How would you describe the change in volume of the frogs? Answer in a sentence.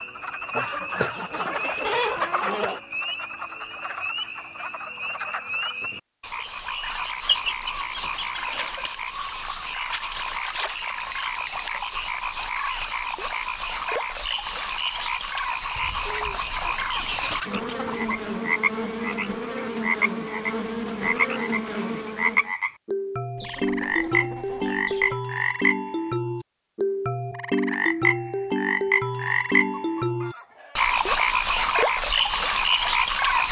The loudness of the frogs goes up.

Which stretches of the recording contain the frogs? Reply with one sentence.
The frogs can be heard from 0.0 to 33.4 s.